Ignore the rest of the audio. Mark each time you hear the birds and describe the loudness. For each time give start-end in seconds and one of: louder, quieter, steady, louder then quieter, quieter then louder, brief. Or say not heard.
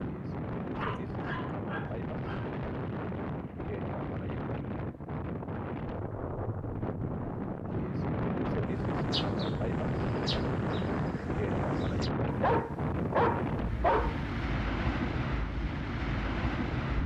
not heard.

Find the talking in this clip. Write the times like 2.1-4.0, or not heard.
not heard.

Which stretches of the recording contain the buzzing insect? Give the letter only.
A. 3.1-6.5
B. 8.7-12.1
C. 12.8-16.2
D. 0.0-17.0
B.